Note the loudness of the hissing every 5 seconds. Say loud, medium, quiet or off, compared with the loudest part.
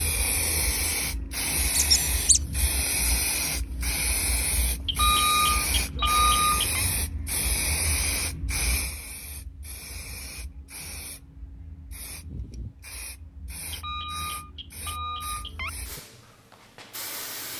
loud, loud, quiet, medium.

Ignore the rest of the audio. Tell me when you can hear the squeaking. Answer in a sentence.
The squeaking can be heard from 1.7 to 2.4 s.